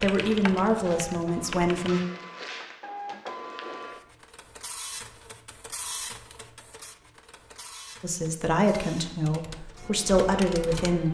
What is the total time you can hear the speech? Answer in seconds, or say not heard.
5 s.